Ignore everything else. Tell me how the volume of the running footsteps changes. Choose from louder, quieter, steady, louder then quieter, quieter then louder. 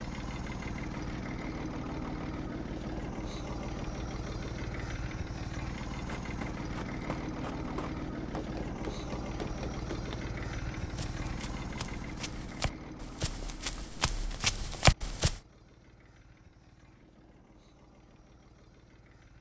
louder.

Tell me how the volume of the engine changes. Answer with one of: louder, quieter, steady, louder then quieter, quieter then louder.
quieter.